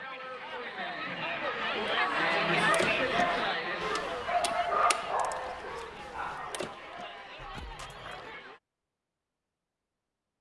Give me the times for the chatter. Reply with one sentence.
The chatter can be heard from 0.0 to 8.6 s.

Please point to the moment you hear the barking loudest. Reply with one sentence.
The volume of the barking peaks at 5 seconds.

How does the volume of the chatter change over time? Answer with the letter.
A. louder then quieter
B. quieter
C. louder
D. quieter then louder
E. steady
A.